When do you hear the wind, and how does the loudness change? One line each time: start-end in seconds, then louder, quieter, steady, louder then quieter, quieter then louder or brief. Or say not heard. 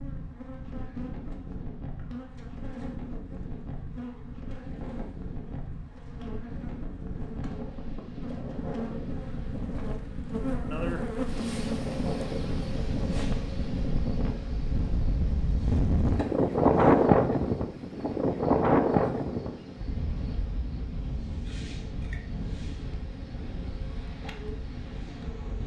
0.0-25.6 louder then quieter.